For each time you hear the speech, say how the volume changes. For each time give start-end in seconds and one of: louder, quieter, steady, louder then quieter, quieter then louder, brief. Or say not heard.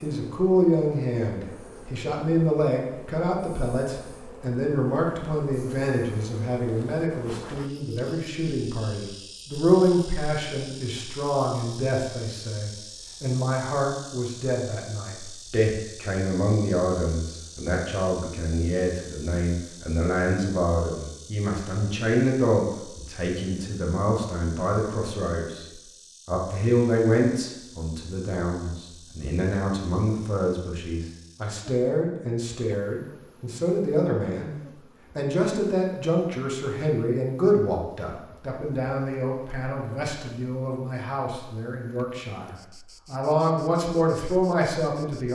0.0-34.5 steady
35.1-45.3 quieter then louder.